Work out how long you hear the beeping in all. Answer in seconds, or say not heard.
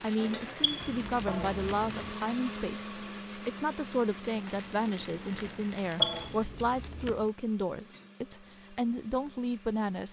3 s.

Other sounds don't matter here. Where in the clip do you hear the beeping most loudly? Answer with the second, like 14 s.
6 s.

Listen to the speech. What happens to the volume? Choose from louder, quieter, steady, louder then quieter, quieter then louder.
steady.